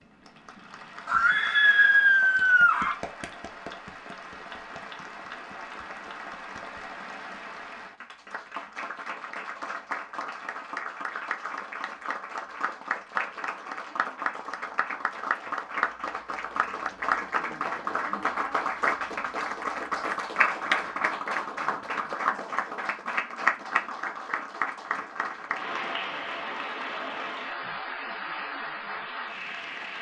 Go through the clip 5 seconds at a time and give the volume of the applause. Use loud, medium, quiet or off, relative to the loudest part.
quiet, medium, medium, loud, loud, medium.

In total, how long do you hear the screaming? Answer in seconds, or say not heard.
2 s.